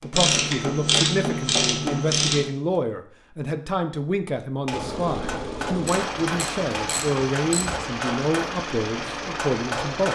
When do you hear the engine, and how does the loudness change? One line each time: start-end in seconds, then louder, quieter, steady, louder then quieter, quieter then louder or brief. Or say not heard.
4.7-10.0 steady.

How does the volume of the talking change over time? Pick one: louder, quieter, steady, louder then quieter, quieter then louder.
steady.